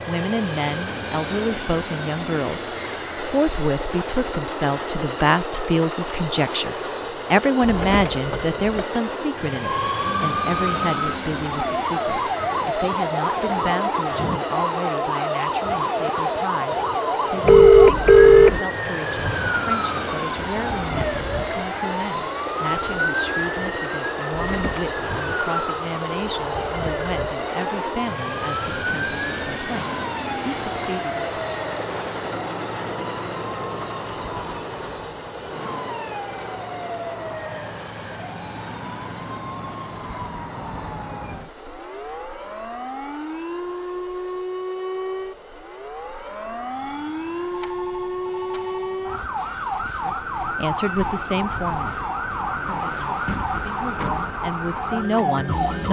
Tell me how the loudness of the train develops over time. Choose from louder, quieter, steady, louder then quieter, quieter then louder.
quieter.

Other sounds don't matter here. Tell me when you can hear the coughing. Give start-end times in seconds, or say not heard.
not heard.